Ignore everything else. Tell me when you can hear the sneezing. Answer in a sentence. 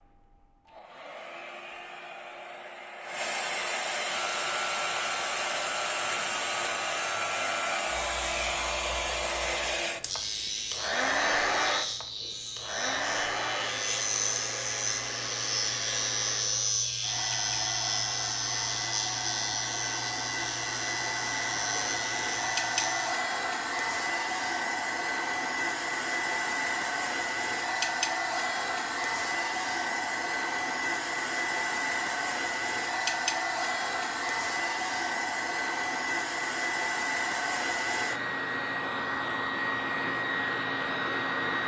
You can't hear the sneezing here.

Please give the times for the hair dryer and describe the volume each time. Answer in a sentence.
You can hear the hair dryer from 0.0 to 41.6 s, at a steady volume.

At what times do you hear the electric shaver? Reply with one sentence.
The electric shaver can be heard from 4.0 to 23.1 s.